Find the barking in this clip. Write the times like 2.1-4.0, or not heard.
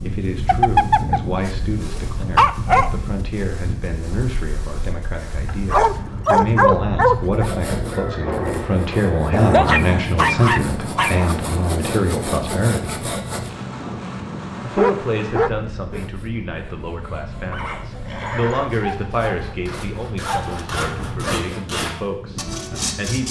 0.5-2.9, 5.7-7.5, 9.3-11.3, 14.8-16.1, 18.8-21.4.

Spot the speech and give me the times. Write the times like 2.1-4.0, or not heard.
0.0-13.1, 14.7-23.2.